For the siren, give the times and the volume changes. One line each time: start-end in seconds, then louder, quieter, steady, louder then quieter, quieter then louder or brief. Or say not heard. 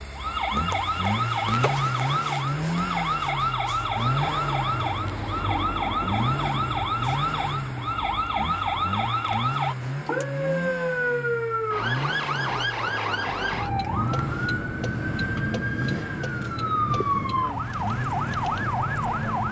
0.0-19.4 steady.